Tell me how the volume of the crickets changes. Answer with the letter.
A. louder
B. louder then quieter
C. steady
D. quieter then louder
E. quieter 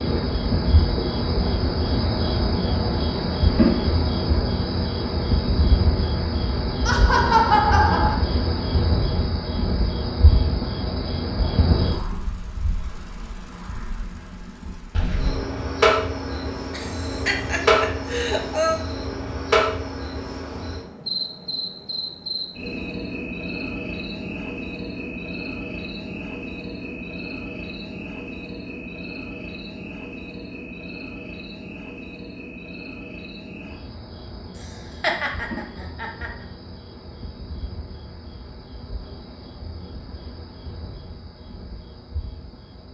E.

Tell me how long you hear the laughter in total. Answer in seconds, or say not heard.
5 s.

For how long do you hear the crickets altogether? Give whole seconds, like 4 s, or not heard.
43 s.